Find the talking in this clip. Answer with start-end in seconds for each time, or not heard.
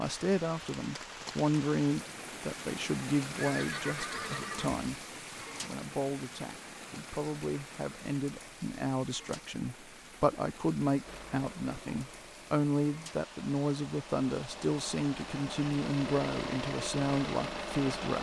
0.0-18.1.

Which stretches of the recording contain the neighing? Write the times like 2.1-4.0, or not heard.
3.4-4.8.